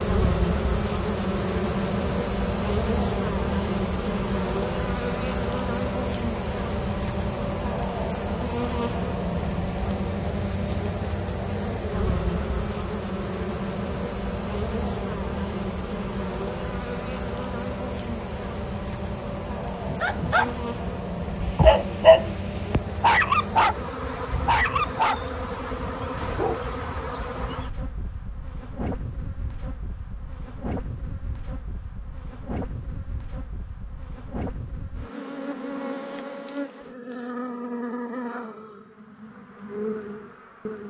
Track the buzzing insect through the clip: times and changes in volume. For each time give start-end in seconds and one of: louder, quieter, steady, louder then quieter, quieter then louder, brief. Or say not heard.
0.0-40.8 quieter.